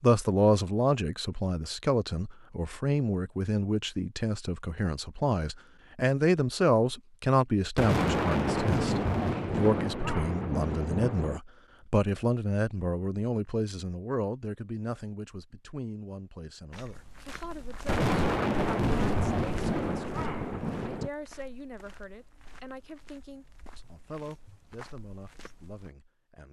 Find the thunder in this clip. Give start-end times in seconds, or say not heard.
7.8-11.4, 17.9-21.1.